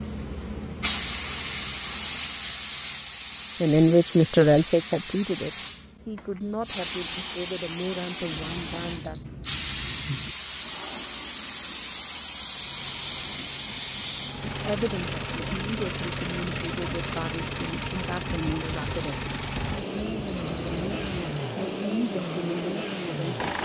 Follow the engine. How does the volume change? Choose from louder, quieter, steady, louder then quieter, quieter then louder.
louder.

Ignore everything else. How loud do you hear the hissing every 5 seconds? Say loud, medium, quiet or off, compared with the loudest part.
loud, loud, loud, quiet, quiet.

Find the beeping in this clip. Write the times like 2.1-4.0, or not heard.
8.3-10.3, 19.9-21.4.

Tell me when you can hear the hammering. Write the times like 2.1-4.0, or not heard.
not heard.